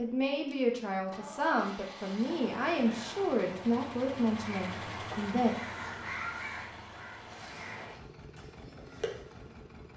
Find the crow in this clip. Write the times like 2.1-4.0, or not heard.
4.4-9.5.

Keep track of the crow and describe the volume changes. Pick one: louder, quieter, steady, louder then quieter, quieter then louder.
louder then quieter.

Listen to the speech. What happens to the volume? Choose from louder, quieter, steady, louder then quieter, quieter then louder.
steady.